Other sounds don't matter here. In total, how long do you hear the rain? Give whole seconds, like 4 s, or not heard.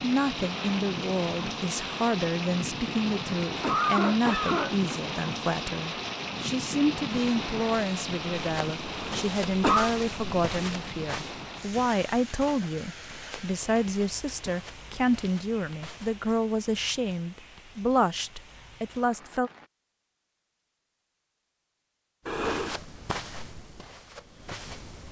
20 s.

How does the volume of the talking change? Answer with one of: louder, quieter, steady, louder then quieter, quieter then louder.
steady.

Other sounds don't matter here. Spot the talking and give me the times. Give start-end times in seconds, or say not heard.
0.0-19.5.